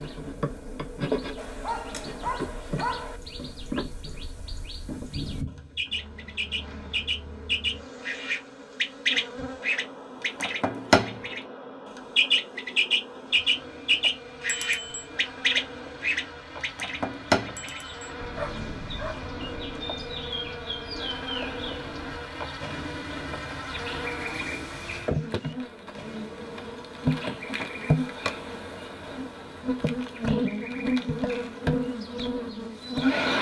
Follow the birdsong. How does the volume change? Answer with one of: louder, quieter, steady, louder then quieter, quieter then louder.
louder then quieter.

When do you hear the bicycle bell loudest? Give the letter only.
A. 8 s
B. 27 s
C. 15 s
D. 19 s
C.